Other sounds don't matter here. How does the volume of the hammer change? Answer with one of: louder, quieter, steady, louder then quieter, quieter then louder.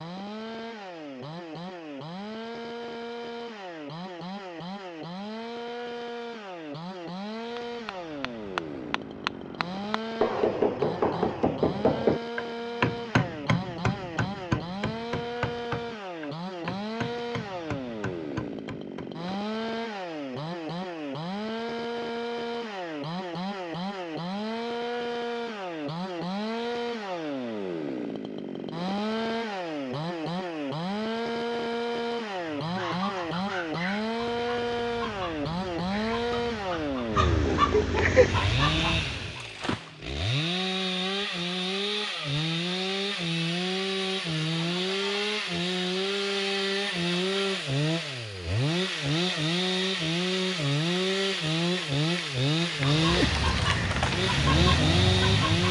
louder then quieter.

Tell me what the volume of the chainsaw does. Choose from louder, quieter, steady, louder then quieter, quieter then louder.
louder.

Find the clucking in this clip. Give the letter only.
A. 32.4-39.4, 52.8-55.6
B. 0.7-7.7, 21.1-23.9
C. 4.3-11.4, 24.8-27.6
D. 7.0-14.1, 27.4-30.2
A.